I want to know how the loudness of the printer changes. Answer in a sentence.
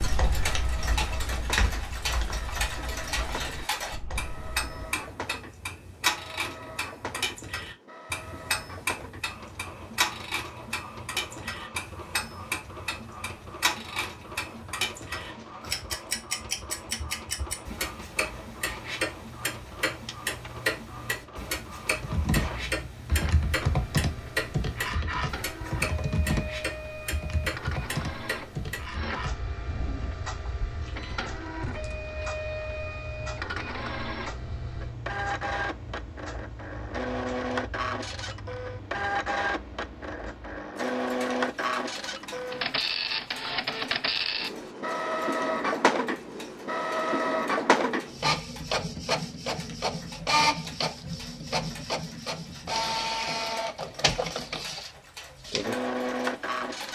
The volume of the printer goes up.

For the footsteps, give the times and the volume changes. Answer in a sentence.
You can't hear the footsteps here.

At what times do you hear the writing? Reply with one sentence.
The writing can't be heard in this clip.